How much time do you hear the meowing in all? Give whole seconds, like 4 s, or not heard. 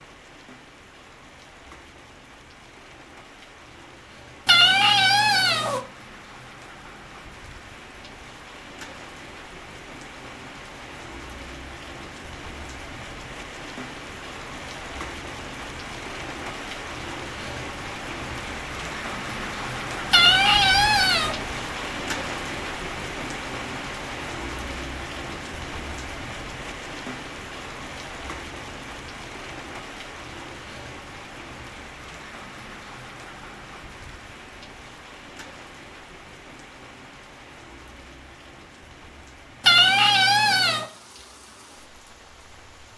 4 s.